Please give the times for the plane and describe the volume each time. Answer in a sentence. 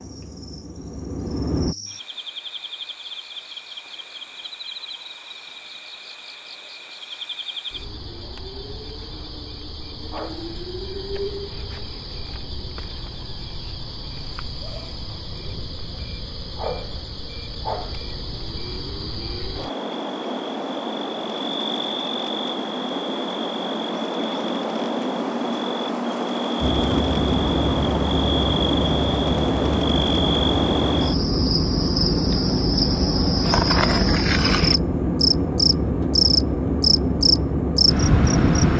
You can hear the plane briefly from 0.0 to 1.8 s; and from 26.6 to 38.7 s, at a steady volume.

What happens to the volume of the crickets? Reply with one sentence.
The volume of the crickets goes up.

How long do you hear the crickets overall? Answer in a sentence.
You can hear the crickets for 39 seconds altogether.